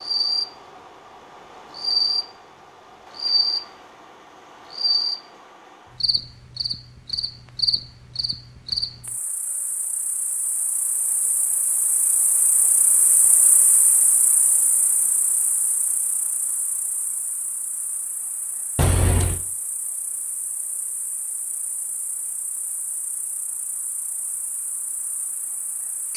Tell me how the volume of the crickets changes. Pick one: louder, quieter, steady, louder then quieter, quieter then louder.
quieter.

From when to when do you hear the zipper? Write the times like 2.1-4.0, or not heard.
18.8-19.4.